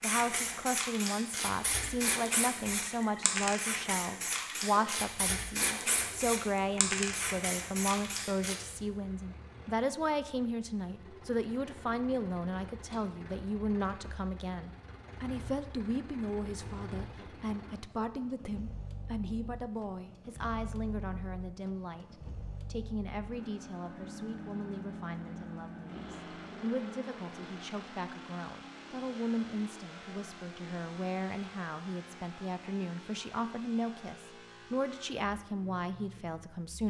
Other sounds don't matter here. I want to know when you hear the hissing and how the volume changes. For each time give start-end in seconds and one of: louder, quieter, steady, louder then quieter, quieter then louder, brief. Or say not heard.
0.0-8.6 steady.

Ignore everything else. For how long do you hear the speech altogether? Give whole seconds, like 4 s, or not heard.
37 s.